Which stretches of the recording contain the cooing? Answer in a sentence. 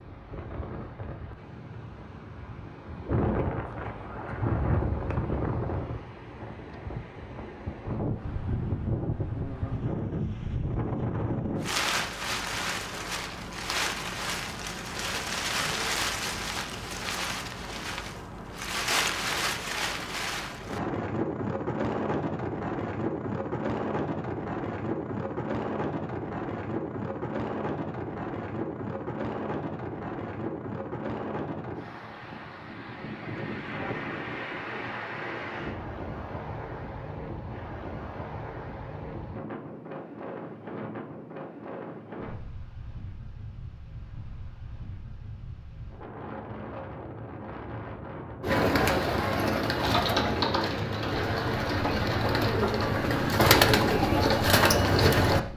The cooing can be heard from 48.4 to 55.4 s.